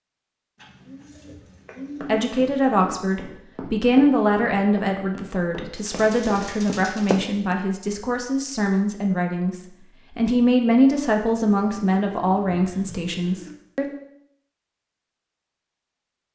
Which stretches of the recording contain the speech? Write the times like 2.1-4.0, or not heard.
2.0-13.8.